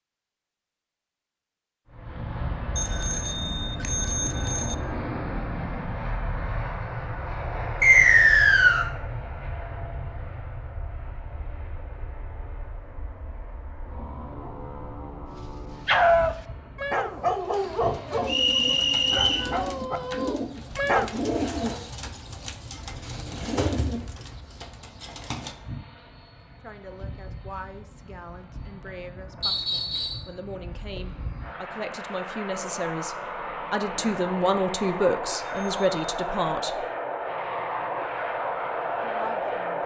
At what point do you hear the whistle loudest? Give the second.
8 s.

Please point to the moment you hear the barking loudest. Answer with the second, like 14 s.
16 s.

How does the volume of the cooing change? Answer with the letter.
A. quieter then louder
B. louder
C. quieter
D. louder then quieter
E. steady
D.